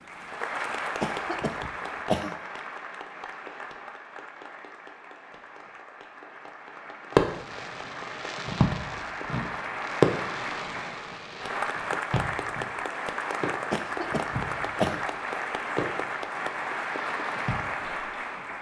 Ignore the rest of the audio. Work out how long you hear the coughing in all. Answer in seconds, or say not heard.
3 s.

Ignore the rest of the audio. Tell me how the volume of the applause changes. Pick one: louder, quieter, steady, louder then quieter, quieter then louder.
quieter then louder.